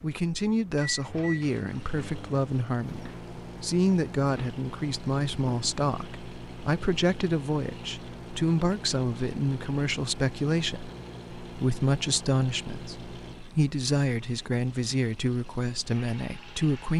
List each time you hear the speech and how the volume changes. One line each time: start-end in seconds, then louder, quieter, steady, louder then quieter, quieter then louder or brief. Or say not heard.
0.0-16.9 steady.